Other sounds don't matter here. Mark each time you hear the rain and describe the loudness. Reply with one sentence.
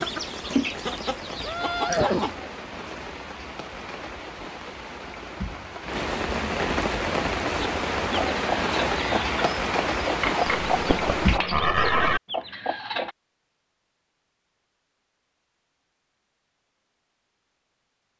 The rain can be heard from 0.0 to 11.4 s, getting louder.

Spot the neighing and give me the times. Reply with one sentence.
You can hear the neighing from 1.4 to 2.3 s and from 10.6 to 12.2 s.